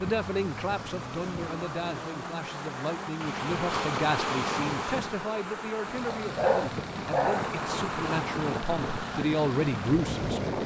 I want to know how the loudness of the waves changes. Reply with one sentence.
The volume of the waves goes up.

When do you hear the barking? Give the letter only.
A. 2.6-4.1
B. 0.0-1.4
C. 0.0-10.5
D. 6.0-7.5
D.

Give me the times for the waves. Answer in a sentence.
You can hear the waves from 0.0 to 10.6 s.